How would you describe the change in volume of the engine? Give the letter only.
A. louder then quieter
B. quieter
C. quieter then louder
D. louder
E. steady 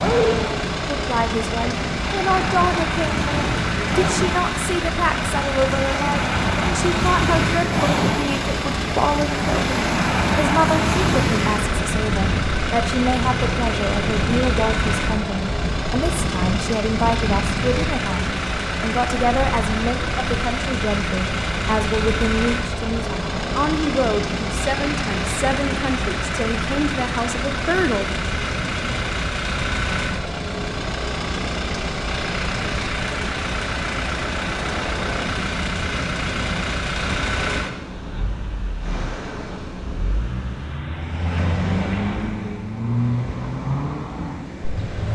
E.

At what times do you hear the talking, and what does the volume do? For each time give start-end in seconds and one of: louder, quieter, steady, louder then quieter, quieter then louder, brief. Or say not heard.
0.0-28.2 steady.